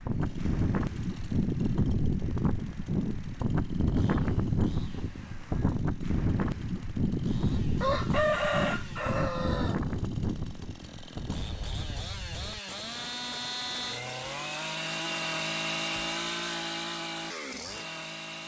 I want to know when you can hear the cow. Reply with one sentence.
You can't hear the cow here.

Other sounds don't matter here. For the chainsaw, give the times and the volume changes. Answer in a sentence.
The chainsaw can be heard from 0.0 to 18.4 s, getting louder.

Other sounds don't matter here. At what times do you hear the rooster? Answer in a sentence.
You can hear the rooster from 7.8 to 9.8 s.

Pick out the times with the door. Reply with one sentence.
You can't hear the door here.